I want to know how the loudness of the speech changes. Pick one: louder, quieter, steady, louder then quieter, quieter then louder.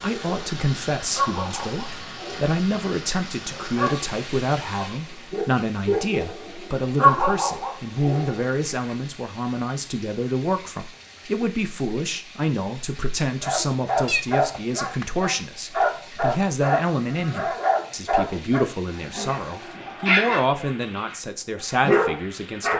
steady.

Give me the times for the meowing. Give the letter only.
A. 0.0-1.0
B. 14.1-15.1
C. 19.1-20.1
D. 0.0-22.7
B.